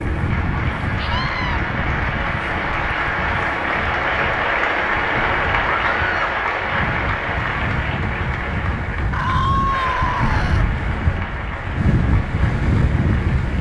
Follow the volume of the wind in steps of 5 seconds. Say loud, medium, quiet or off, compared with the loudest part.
medium, medium, loud.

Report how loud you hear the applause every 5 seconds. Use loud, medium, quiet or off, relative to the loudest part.
loud, loud, medium.